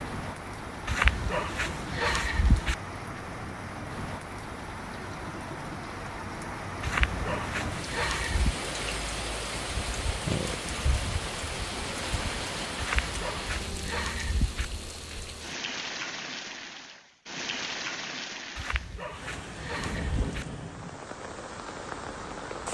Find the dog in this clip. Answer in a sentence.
You can hear the dog from 0.8 to 2.8 s, from 6.8 to 8.6 s, from 12.8 to 14.7 s and from 18.6 to 20.4 s.